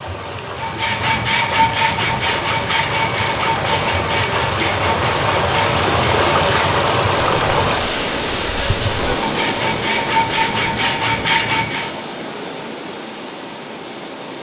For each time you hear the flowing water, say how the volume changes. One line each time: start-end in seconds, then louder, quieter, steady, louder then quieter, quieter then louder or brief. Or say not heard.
0.0-14.3 louder then quieter.